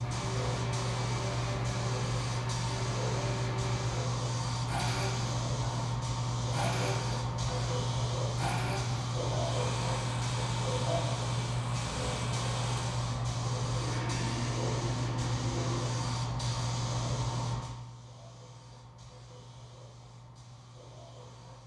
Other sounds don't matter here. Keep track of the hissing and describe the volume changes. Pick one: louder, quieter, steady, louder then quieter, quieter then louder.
quieter.